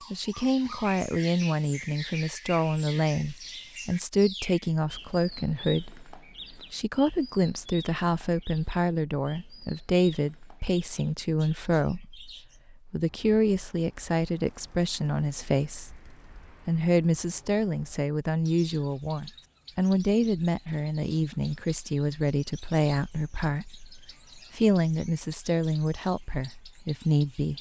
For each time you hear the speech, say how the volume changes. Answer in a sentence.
You can hear the speech from 0.1 to 27.5 s, at a steady volume.